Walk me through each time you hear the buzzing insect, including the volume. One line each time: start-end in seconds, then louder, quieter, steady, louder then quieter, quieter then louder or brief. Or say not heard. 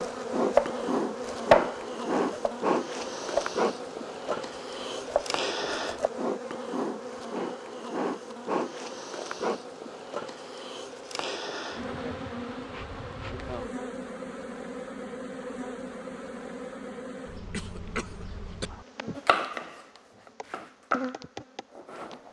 0.0-22.2 quieter.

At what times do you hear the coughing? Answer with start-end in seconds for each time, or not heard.
17.5-18.7.